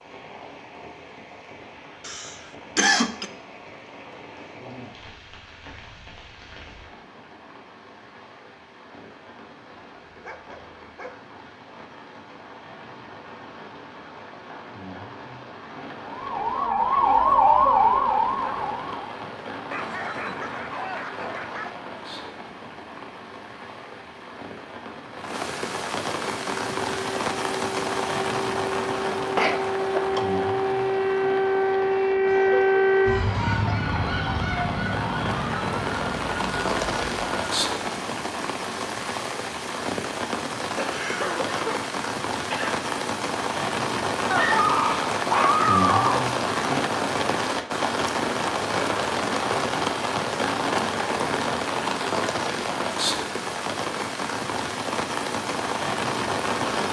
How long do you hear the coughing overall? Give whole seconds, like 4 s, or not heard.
4 s.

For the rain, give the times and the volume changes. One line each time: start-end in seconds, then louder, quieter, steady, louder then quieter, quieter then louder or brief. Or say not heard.
0.0-56.8 louder.